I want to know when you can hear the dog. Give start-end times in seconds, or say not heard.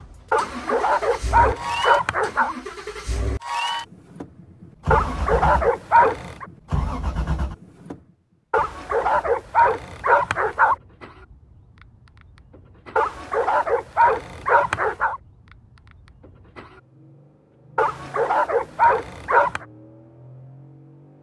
0.3-2.5, 4.9-6.5, 8.5-10.8, 12.9-15.2, 17.8-19.6.